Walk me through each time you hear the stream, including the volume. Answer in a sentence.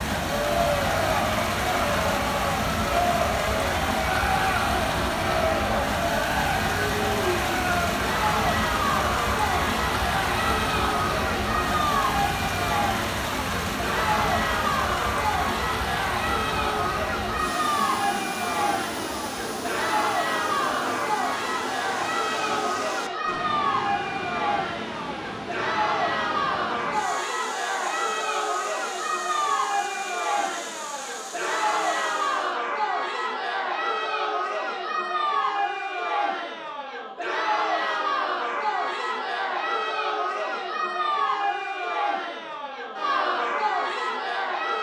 The stream can be heard from 0.0 to 32.6 s, getting quieter.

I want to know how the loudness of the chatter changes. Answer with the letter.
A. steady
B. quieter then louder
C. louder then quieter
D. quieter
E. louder
A.